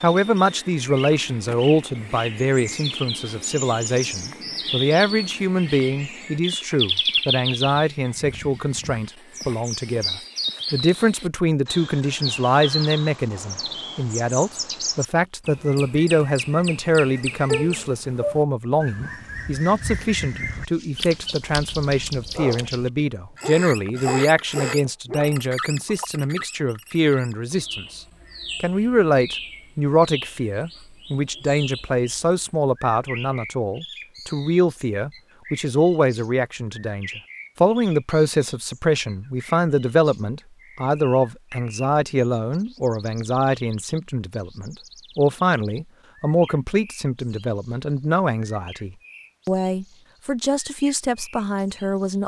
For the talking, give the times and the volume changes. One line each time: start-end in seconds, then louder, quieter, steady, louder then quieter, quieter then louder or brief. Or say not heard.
0.0-52.2 steady.